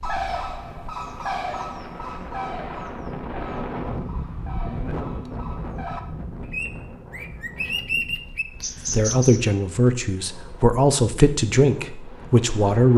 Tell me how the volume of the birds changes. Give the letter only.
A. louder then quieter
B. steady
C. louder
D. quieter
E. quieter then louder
E.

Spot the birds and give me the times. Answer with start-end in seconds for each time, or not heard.
0.0-9.4.